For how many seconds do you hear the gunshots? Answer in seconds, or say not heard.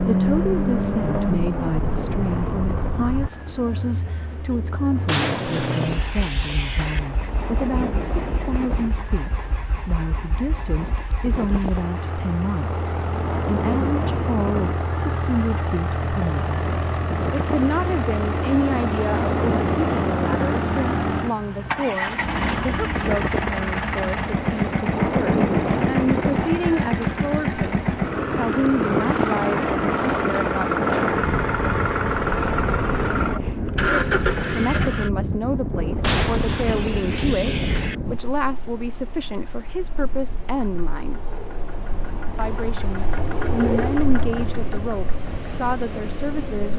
4 s.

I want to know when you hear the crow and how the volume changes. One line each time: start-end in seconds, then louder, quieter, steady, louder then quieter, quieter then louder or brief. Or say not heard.
not heard.